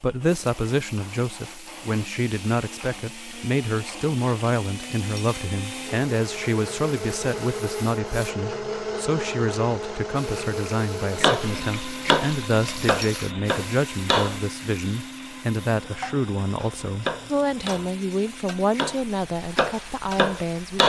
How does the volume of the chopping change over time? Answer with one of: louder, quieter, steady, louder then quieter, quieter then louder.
quieter then louder.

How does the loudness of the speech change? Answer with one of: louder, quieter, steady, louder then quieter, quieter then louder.
steady.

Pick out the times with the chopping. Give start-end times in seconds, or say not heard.
11.2-14.4, 16.6-20.8.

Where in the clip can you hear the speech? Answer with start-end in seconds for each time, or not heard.
0.0-20.8.